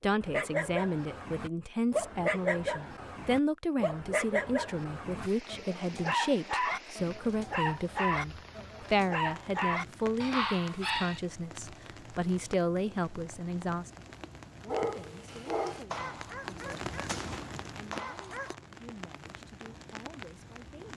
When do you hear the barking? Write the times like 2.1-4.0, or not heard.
0.2-11.2, 14.7-18.6.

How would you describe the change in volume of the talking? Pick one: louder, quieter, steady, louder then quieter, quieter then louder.
quieter.